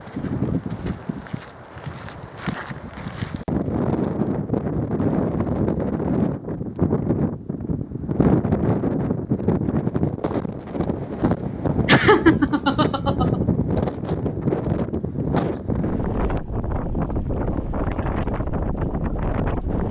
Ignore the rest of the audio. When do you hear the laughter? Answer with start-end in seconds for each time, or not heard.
11.8-13.3.